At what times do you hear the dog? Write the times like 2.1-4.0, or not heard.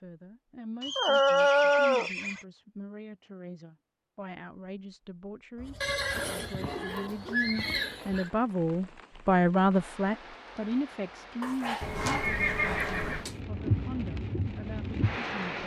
0.9-2.1, 5.5-7.4, 11.4-13.3.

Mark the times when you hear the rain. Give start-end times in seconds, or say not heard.
7.3-15.6.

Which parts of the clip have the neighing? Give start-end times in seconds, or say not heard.
0.8-2.5, 5.8-8.3, 11.8-13.2.